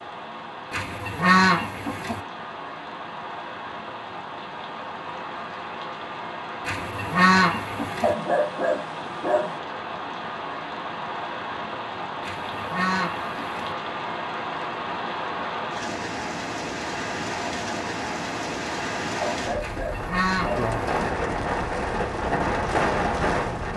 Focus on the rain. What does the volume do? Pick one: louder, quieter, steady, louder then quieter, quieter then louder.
louder.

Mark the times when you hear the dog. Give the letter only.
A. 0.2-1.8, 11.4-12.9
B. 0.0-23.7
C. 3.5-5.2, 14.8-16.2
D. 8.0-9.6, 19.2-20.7
D.